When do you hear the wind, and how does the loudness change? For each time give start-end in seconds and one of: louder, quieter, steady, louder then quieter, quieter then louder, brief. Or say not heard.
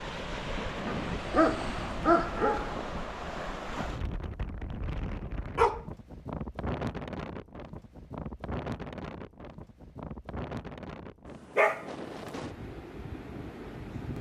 0.0-14.1 quieter.